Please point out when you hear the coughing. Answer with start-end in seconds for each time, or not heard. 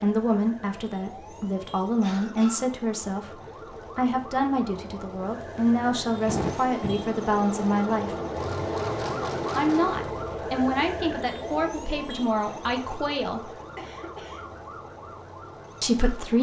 2.0-2.6, 6.2-7.1, 13.8-14.4.